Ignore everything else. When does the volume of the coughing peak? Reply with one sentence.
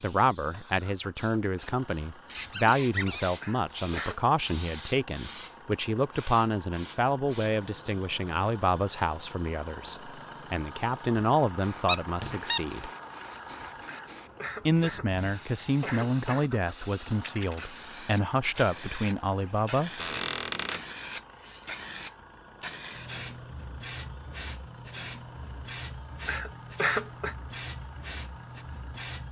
The loudest moment of the coughing is at 27 seconds.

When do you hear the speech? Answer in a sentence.
The speech can be heard from 0.0 to 12.9 s and from 14.7 to 20.2 s.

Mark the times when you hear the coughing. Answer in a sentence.
The coughing can be heard from 3.4 to 4.2 s, from 13.8 to 16.5 s and from 26.2 to 27.4 s.